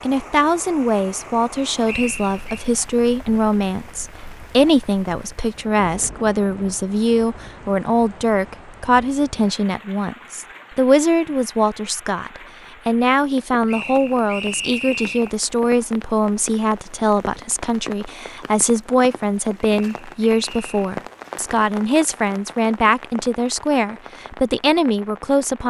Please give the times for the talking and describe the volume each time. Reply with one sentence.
You can hear the talking from 0.0 to 25.6 s, at a steady volume.